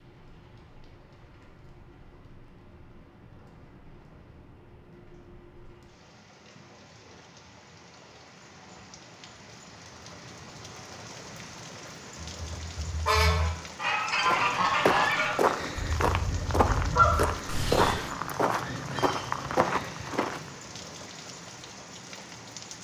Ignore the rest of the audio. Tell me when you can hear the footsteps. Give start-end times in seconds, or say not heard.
14.1-20.5.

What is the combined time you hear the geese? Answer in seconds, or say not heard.
6 s.